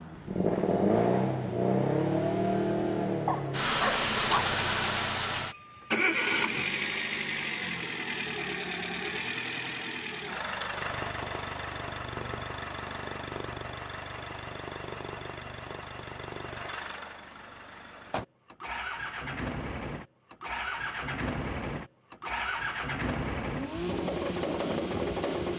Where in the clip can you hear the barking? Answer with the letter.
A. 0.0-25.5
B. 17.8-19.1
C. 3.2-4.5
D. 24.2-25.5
C.